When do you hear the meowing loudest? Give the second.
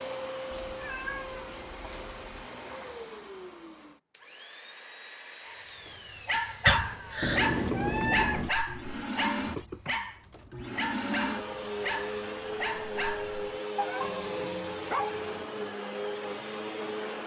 8 s.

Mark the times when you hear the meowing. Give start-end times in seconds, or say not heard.
0.5-2.5, 7.2-8.5, 14.0-15.4.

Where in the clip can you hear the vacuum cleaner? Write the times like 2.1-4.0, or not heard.
0.0-17.2.